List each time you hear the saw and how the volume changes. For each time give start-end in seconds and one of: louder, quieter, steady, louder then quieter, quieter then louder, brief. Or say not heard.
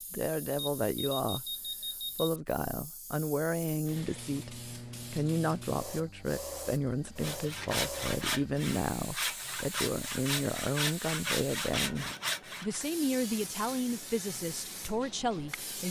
7.2-12.8 steady.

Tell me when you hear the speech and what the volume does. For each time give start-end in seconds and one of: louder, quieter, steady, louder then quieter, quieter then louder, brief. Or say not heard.
0.1-1.5 brief
2.1-15.8 steady.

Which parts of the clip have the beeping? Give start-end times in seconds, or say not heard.
0.6-2.3.